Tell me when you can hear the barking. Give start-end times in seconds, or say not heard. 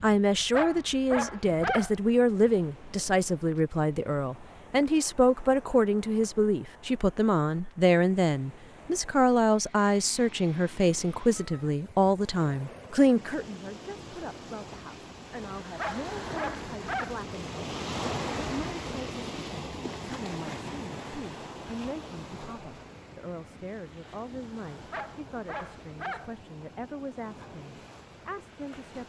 0.5-1.9, 15.8-17.2, 24.9-26.4.